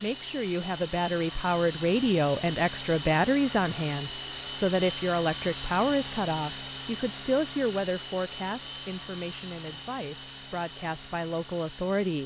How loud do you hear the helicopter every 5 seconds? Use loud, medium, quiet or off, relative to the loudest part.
loud, loud, medium.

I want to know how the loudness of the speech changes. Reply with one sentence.
The volume of the speech goes down.